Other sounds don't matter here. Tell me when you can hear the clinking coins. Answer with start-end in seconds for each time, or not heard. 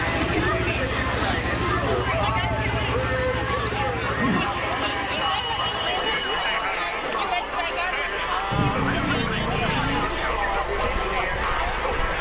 not heard.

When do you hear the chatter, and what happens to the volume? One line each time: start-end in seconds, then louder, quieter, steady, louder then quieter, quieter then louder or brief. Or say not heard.
0.0-12.1 steady.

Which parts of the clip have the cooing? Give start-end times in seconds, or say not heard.
0.1-2.1, 4.2-5.8, 8.5-10.2.